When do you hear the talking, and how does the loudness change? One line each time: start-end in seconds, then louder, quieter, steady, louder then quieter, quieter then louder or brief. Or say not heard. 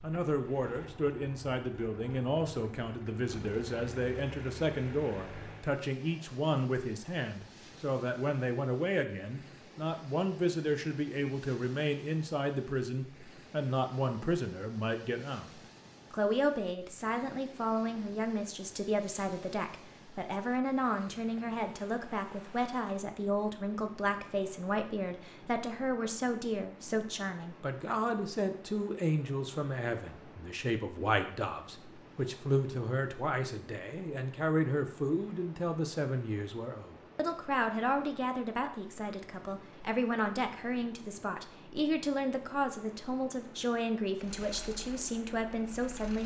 0.0-15.5 steady
16.1-46.2 steady.